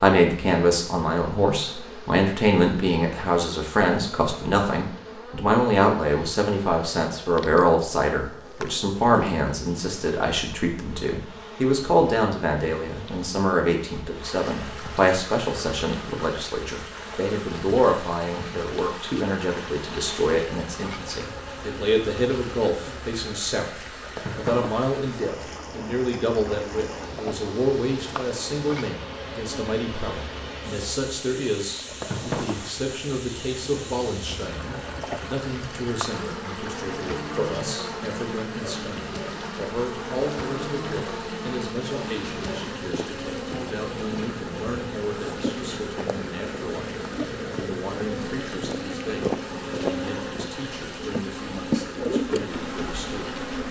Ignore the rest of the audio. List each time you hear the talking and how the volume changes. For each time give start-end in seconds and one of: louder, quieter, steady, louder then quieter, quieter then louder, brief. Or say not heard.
0.0-53.4 quieter.